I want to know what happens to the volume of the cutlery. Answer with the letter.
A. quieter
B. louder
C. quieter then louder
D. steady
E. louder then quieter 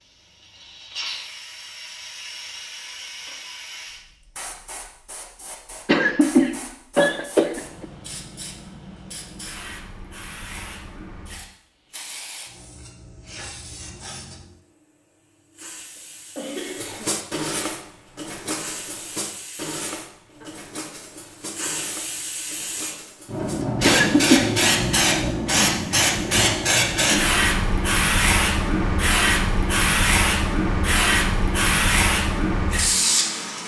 A.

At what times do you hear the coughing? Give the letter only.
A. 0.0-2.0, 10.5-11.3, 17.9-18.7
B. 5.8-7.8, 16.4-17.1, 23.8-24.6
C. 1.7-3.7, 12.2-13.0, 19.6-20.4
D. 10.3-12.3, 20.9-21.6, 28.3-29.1
B.